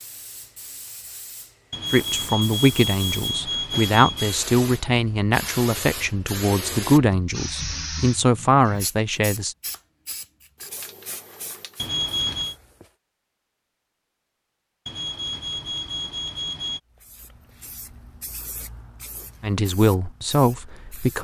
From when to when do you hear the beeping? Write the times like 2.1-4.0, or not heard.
1.7-4.4, 11.8-12.6, 14.8-16.8.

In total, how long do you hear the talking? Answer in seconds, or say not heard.
9 s.